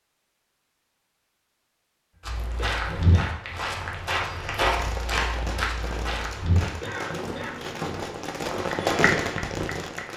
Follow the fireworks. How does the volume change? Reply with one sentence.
The loudness of the fireworks goes up.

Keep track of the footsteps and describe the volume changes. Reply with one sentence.
The volume of the footsteps goes down.